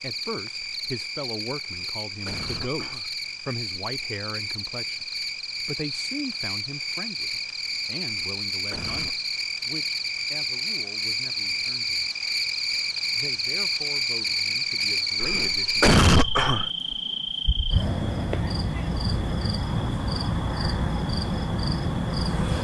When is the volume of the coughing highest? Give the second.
16 s.